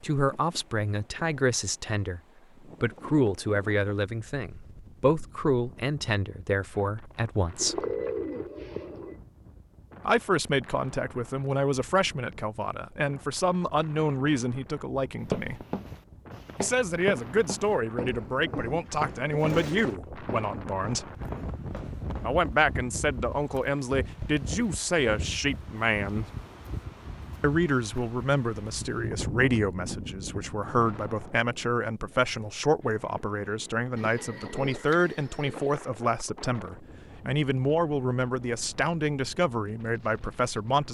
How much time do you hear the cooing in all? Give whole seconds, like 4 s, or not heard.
5 s.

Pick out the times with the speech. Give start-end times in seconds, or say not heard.
0.0-2.2, 2.8-7.8, 10.1-15.6, 16.6-21.1, 22.2-26.3, 27.4-40.9.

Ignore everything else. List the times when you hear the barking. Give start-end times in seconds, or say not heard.
not heard.